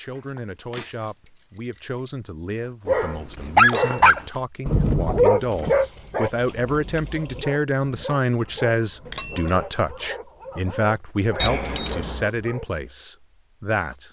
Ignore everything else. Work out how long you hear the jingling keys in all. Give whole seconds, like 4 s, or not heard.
5 s.